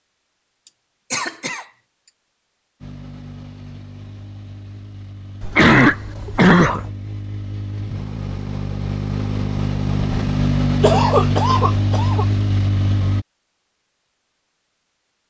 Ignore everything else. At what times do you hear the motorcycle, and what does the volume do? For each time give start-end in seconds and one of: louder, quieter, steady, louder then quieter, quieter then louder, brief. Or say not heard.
2.8-13.2 louder.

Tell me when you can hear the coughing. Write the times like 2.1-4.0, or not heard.
0.7-1.6, 5.4-6.9, 10.8-12.2.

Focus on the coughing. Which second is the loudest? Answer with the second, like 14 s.
6 s.